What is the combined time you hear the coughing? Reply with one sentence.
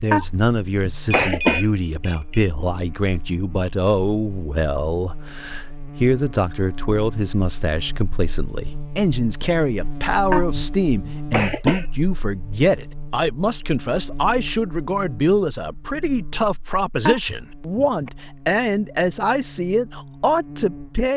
You can hear the coughing for 4 seconds altogether.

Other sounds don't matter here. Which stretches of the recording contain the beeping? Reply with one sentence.
You can hear the beeping from 1.2 to 2.5 s.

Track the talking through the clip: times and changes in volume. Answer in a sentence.
You can hear the talking from 0.0 to 21.1 s, at a steady volume.